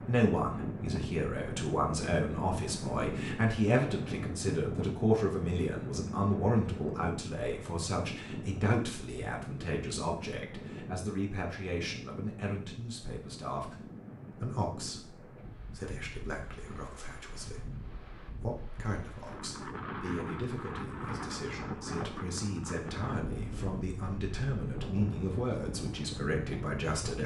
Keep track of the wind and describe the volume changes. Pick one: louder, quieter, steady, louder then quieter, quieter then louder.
quieter then louder.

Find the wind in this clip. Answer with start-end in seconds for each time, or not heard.
0.0-27.2.